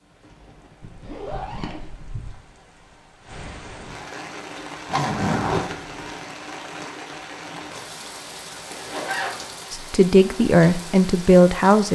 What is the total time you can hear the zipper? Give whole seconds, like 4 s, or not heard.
4 s.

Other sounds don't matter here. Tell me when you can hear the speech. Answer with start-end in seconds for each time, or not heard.
9.7-11.9.